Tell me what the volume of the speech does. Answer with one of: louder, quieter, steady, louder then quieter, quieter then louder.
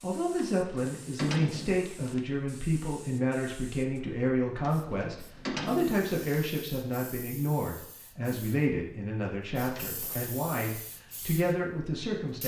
steady.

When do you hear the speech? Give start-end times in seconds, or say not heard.
0.0-12.4.